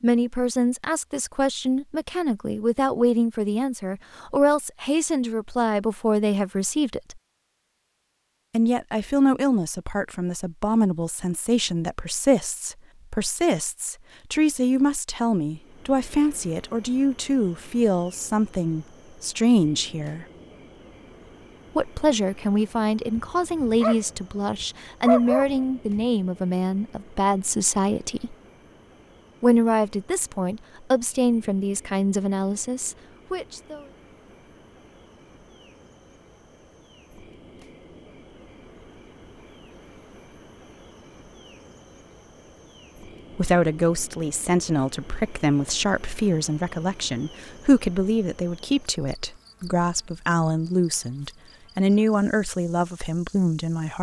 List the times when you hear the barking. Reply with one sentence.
The barking can be heard from 23.1 to 26.1 s.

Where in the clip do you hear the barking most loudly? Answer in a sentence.
The volume of the barking peaks at 25 seconds.